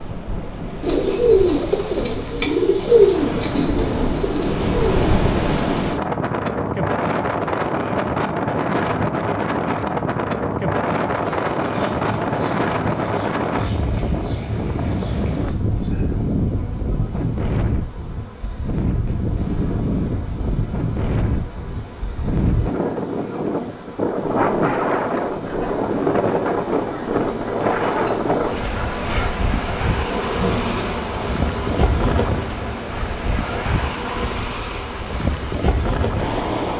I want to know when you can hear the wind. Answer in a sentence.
The wind can be heard from 0.0 to 36.7 s.